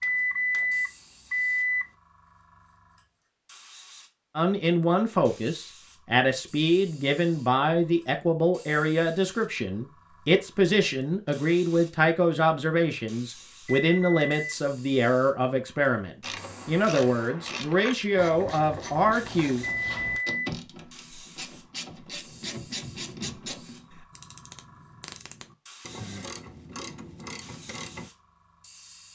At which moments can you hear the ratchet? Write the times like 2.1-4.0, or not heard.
16.2-28.1.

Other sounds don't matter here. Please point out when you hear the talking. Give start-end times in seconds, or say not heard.
4.3-19.6.